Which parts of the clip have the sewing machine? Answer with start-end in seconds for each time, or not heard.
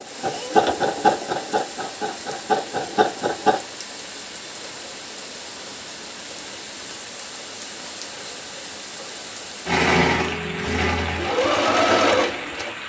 0.0-3.6, 9.7-12.7.